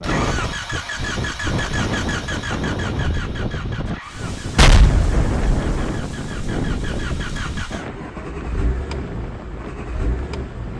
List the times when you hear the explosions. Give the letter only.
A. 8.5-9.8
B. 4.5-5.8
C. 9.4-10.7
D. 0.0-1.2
B.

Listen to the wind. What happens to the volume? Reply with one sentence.
The volume of the wind goes down.